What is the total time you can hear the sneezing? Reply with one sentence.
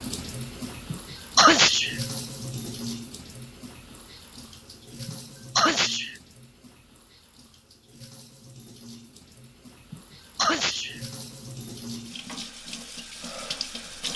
The sneezing can be heard for 3 seconds in total.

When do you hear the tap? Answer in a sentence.
The tap can be heard from 0.0 to 14.1 s.